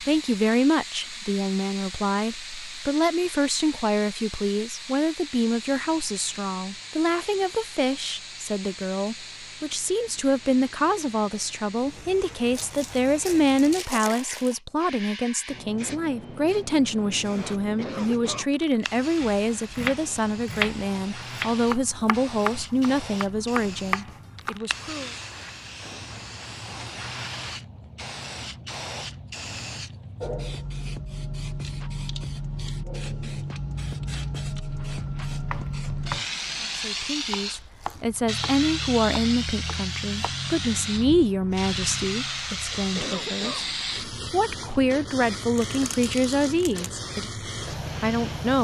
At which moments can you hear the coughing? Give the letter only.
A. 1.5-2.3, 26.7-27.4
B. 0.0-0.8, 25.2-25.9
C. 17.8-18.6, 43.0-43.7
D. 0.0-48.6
C.